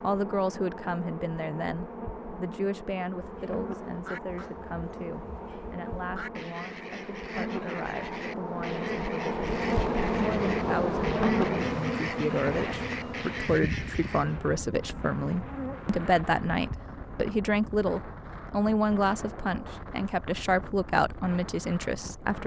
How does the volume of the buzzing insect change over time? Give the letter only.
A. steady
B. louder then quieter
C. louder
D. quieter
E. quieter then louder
B.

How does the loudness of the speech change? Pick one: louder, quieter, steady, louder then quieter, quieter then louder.
quieter then louder.